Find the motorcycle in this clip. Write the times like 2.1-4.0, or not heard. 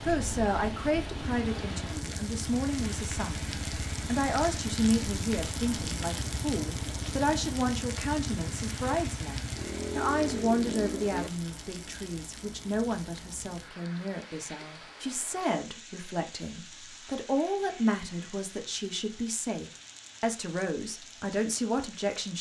0.0-11.3.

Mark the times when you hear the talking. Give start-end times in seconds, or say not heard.
0.0-22.3.